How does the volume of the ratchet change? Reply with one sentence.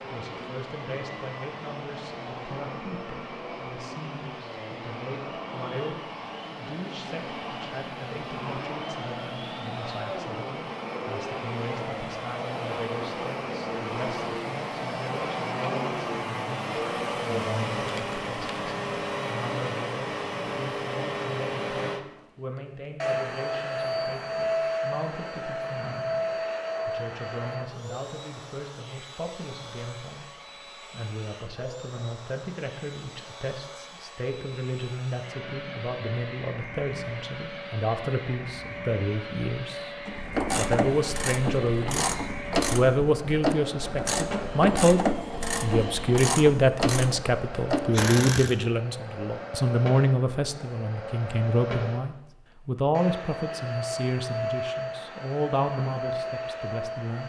The volume of the ratchet stays about the same.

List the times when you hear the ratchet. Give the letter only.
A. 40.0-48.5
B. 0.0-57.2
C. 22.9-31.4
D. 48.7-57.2
A.